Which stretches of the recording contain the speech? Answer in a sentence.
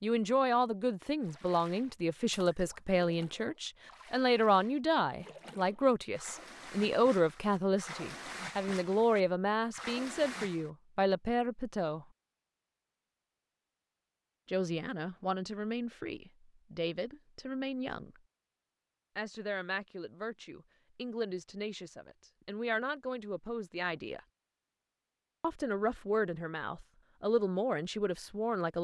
The speech can be heard from 0.0 to 12.1 s, from 14.4 to 18.2 s, from 19.1 to 24.2 s and from 25.4 to 28.7 s.